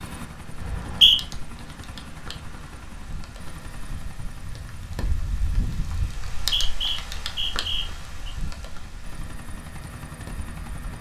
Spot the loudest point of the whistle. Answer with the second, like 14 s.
1 s.